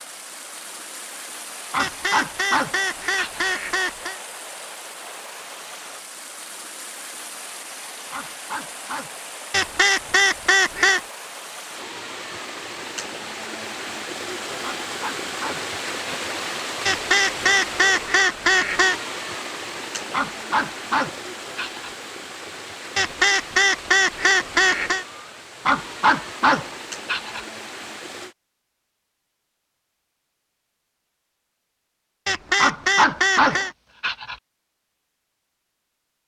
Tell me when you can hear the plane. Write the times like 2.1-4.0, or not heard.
not heard.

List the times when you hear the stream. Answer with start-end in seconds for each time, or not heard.
0.0-28.4.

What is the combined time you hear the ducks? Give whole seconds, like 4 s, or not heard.
10 s.